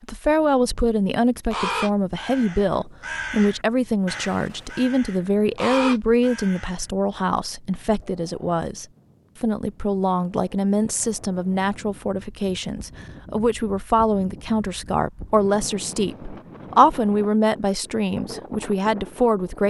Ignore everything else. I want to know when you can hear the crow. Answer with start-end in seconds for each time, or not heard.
1.5-6.8.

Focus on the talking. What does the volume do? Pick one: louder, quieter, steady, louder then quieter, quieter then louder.
steady.